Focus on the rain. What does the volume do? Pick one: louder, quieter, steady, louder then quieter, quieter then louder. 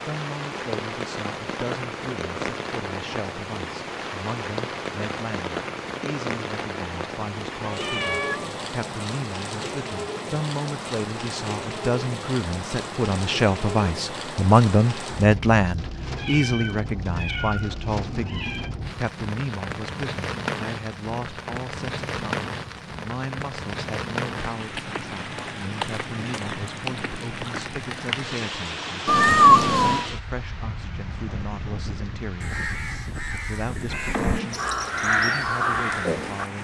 steady.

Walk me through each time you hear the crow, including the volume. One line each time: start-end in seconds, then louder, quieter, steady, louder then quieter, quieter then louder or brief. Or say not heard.
32.4-36.5 louder.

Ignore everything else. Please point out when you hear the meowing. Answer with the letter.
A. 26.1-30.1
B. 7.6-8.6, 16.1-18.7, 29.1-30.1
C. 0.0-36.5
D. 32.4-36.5
B.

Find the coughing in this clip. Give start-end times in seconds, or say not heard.
not heard.